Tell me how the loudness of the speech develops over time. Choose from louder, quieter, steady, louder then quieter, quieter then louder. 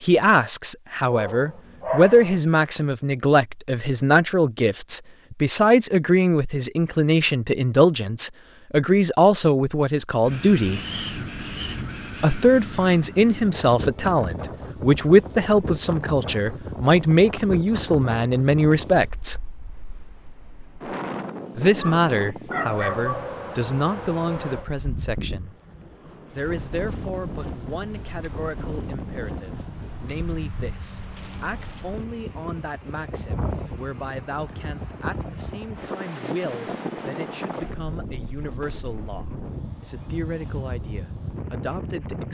quieter.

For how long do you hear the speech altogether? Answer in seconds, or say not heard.
38 s.